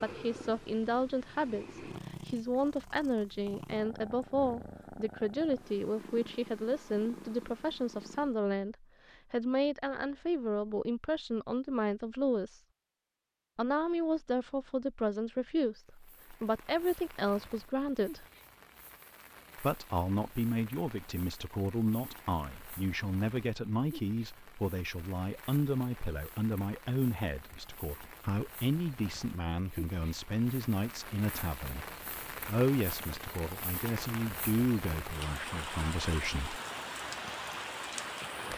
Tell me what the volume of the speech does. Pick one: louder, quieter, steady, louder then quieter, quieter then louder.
steady.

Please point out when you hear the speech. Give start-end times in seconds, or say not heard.
0.0-12.6, 13.6-18.2, 19.6-36.6.